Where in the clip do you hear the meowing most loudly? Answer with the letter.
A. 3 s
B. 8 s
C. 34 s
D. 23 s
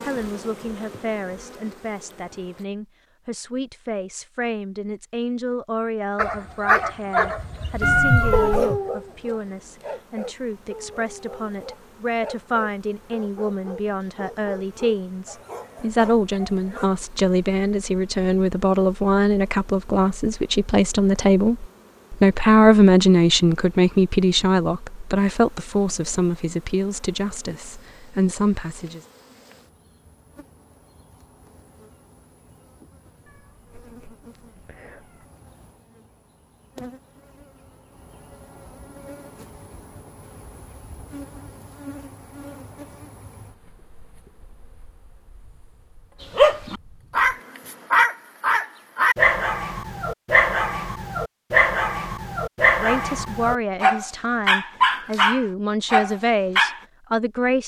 B.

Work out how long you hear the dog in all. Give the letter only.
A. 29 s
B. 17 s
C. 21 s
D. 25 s
C.